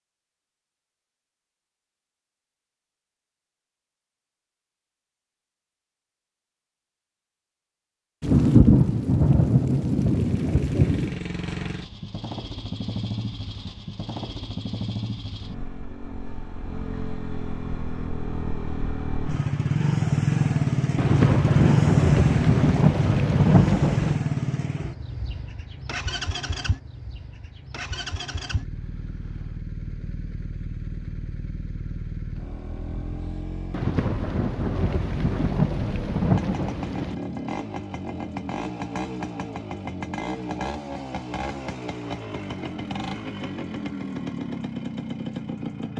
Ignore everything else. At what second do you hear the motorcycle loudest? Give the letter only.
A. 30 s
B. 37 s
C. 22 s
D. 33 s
C.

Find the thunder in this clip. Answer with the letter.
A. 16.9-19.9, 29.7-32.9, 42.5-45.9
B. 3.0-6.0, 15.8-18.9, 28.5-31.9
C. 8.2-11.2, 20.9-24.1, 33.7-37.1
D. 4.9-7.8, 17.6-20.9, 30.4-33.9
C.